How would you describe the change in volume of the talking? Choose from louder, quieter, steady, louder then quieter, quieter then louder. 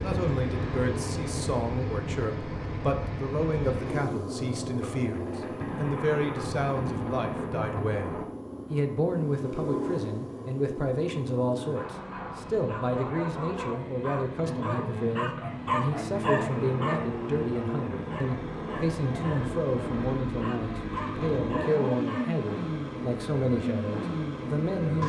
steady.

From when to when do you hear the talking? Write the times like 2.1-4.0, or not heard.
0.0-25.0.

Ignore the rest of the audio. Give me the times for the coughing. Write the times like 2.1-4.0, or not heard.
not heard.